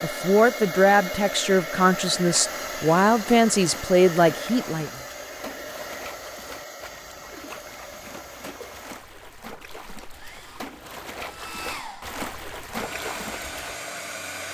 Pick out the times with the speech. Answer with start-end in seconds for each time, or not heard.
0.0-4.9.